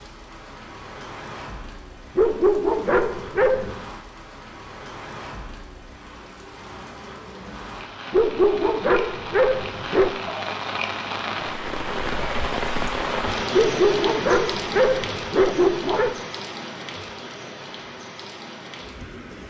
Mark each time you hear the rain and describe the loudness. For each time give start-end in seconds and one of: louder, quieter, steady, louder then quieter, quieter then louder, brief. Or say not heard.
0.0-19.4 louder then quieter.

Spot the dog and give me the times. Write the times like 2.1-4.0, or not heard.
2.1-3.8, 8.1-10.2, 13.5-16.1.